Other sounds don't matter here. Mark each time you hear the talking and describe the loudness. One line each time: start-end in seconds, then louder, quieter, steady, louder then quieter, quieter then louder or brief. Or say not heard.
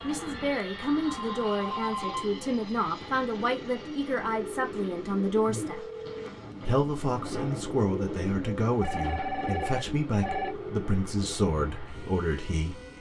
0.0-5.8 steady
6.7-12.8 steady.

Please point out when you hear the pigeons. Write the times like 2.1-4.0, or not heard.
1.9-12.9.